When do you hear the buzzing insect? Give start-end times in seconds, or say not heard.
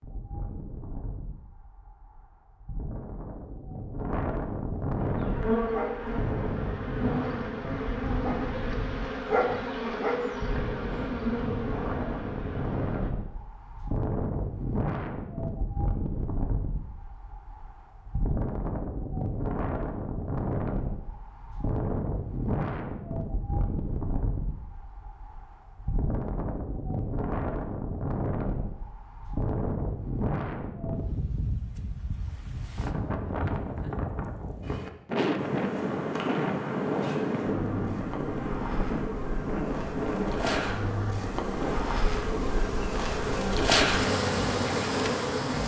5.0-13.1, 35.4-45.6.